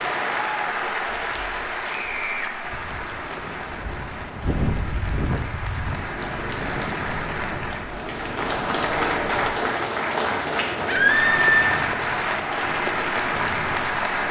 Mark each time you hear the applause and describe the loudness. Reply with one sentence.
The applause can be heard from 0.0 to 14.2 s, getting quieter then louder.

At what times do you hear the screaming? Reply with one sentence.
You can hear the screaming from 1.9 to 2.5 s and from 10.8 to 11.8 s.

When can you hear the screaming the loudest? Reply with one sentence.
The loudest moment of the screaming is at 11 seconds.